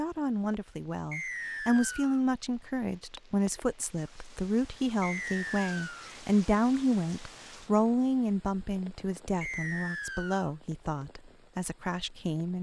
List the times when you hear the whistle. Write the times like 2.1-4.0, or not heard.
1.1-2.2, 5.0-6.2, 9.4-10.5.